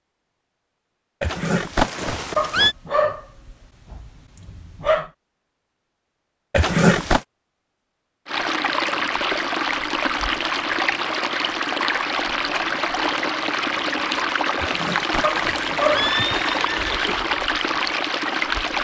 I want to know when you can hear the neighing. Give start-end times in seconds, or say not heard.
1.2-2.8, 6.5-7.2, 14.6-17.2.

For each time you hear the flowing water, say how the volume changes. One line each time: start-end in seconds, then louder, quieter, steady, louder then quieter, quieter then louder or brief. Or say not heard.
8.2-18.7 steady.